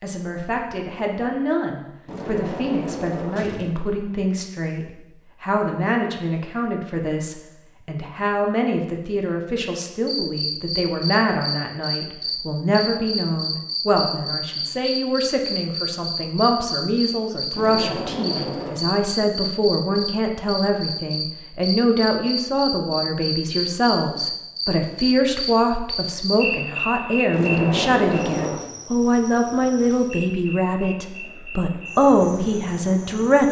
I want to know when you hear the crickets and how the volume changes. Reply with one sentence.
You can hear the crickets from 10.1 to 33.4 s, getting quieter.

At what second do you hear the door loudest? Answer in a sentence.
The volume of the door peaks at 28 seconds.